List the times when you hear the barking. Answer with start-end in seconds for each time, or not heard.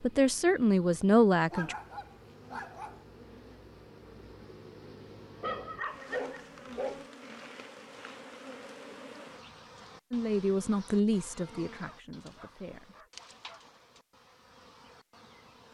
1.5-3.0, 5.4-7.0, 11.8-13.7.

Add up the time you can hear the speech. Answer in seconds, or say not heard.
5 s.